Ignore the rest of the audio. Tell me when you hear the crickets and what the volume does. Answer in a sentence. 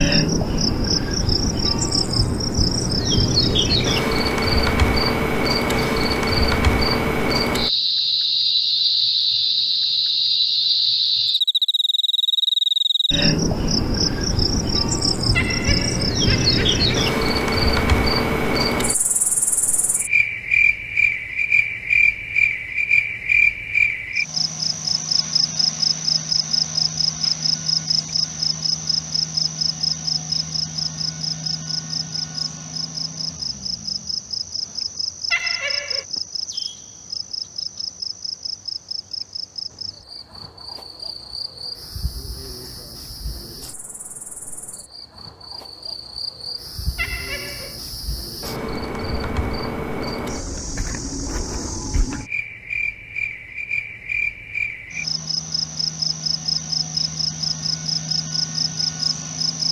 You can hear the crickets from 0.0 to 59.6 s, getting quieter then louder.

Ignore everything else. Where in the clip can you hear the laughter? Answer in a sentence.
The laughter can be heard from 15.3 to 17.1 s, from 35.3 to 36.0 s and from 47.0 to 47.8 s.